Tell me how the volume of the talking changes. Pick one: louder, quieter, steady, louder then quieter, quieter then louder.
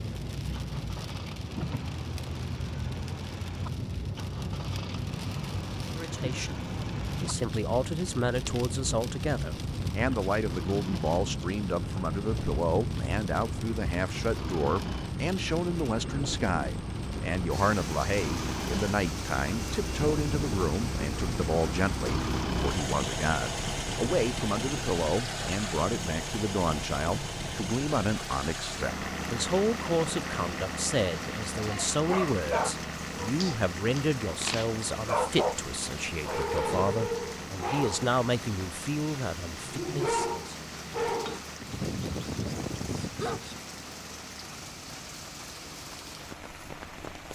steady.